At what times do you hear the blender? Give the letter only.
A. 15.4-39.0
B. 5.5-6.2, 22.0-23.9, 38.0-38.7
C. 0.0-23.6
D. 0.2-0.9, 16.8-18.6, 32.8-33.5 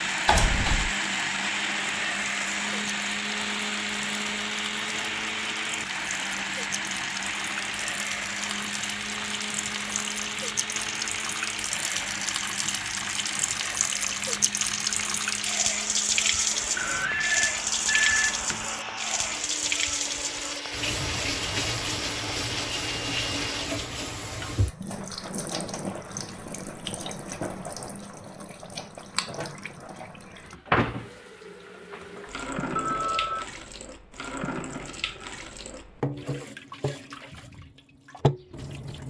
C.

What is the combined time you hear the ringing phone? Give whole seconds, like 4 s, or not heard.
3 s.